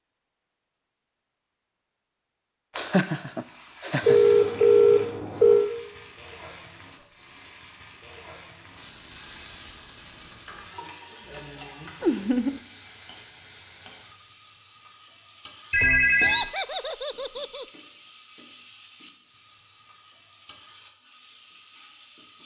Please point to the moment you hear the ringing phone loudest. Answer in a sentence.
The loudest moment of the ringing phone is at 5 seconds.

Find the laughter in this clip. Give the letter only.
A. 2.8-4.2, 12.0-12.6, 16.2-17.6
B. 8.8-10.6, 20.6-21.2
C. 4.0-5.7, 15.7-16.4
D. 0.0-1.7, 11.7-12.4
A.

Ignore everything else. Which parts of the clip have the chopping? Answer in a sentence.
You can't hear the chopping here.